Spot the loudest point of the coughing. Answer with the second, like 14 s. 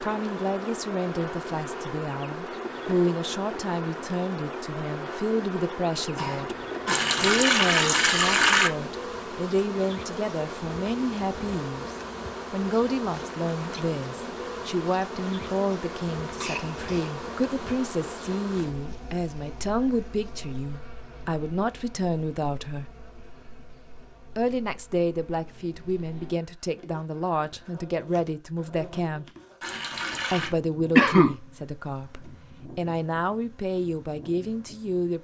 31 s.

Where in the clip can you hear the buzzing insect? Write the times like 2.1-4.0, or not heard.
0.0-35.2.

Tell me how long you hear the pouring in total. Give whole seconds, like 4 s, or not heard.
3 s.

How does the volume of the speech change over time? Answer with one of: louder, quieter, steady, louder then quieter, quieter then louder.
steady.